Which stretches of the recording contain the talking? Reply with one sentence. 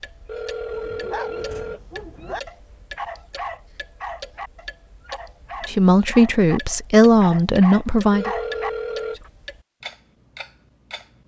You can hear the talking from 5.7 to 8.3 s.